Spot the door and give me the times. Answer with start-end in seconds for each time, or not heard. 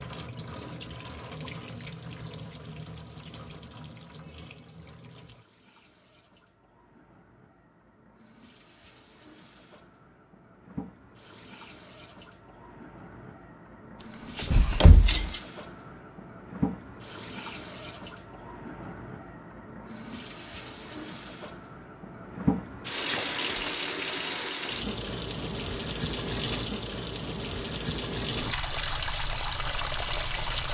14.3-15.4.